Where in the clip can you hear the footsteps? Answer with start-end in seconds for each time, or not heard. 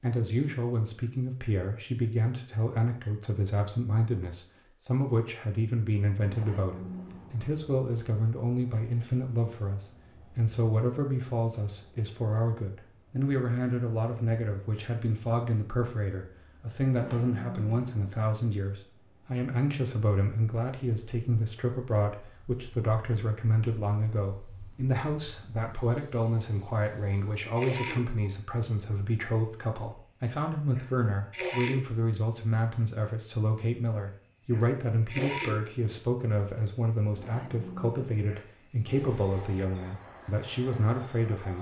not heard.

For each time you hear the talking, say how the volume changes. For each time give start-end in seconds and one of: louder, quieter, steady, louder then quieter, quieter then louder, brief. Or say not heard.
0.0-41.5 steady.